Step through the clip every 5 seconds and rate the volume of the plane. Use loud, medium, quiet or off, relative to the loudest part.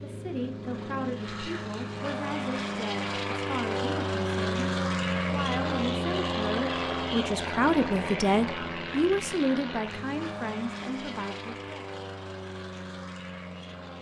loud, loud, medium.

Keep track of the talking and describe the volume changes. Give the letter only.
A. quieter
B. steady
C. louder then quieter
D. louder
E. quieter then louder
C.